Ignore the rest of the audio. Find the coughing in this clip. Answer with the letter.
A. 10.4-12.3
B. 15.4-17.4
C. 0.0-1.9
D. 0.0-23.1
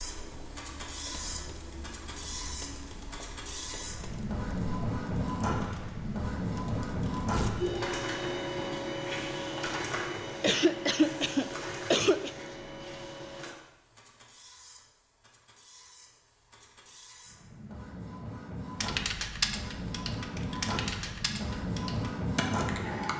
A.